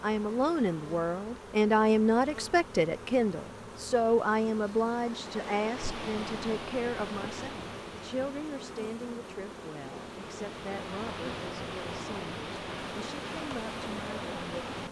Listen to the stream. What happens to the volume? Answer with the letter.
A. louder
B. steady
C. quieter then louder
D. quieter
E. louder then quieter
C.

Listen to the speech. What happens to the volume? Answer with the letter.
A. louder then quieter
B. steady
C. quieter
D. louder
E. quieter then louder
C.